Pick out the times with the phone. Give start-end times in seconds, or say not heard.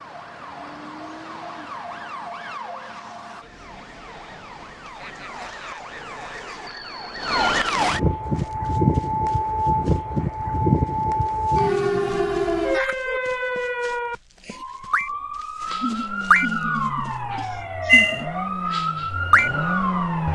not heard.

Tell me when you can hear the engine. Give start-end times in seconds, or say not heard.
15.7-20.3.